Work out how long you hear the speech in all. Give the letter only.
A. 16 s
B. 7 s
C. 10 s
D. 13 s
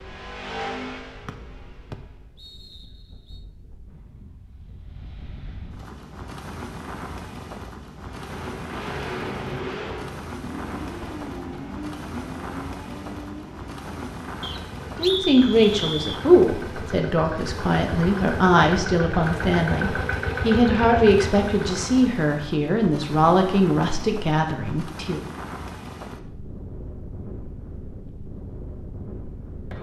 C.